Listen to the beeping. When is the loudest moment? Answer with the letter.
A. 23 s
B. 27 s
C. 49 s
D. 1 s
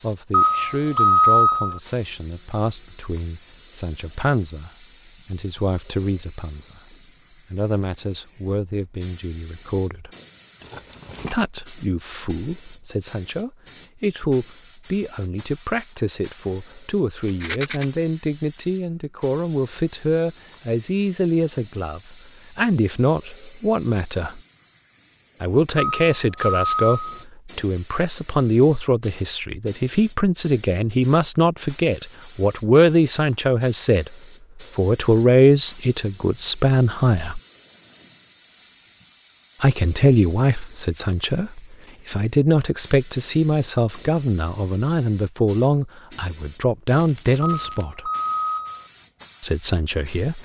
D.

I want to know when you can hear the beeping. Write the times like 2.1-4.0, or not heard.
0.3-1.8, 25.8-27.2, 47.5-48.9.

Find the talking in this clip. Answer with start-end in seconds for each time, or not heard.
0.0-10.1, 11.3-24.4, 25.4-34.1, 34.8-37.4, 39.6-48.1, 49.4-50.4.